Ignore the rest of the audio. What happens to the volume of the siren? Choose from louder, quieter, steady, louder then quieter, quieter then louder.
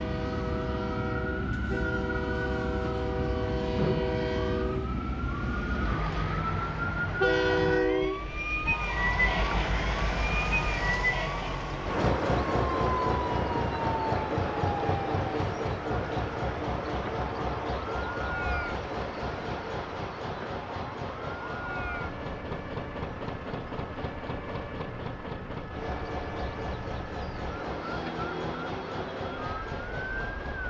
quieter.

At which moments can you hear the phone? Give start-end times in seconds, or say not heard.
not heard.